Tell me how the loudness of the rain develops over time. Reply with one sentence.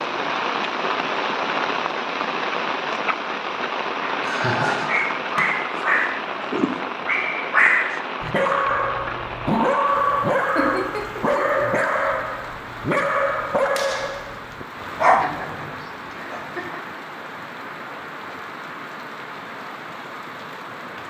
The volume of the rain goes down.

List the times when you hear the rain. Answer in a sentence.
You can hear the rain from 0.0 to 21.0 s.